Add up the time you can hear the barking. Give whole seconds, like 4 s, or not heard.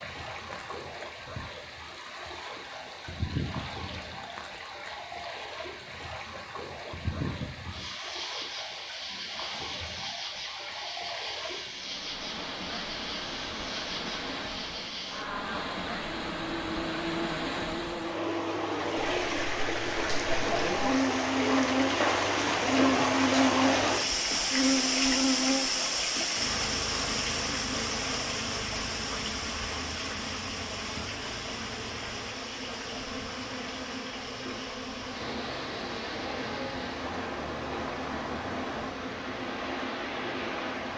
not heard.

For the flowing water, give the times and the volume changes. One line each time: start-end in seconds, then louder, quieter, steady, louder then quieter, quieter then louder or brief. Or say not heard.
0.0-40.9 louder then quieter.